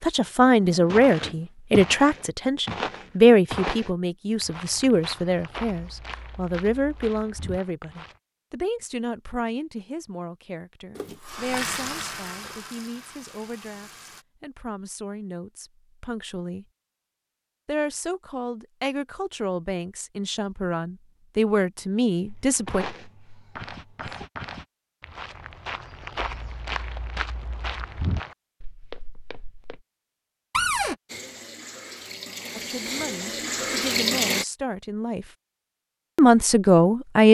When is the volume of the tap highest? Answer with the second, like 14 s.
34 s.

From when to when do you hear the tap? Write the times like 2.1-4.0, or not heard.
10.9-14.2, 31.1-34.5.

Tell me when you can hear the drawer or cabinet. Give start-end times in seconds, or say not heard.
0.4-1.4, 30.5-30.9.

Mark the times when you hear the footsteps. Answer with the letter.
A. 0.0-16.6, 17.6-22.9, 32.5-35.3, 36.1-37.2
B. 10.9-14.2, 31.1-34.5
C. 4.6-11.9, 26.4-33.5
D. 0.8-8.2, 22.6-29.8
D.